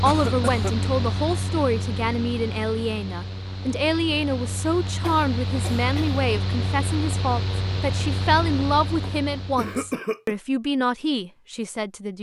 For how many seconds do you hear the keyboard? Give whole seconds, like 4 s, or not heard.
not heard.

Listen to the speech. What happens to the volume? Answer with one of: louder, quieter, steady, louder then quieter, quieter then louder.
steady.